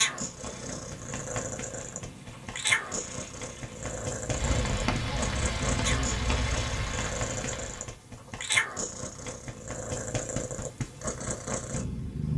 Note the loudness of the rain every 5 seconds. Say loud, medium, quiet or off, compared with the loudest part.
medium, loud, off.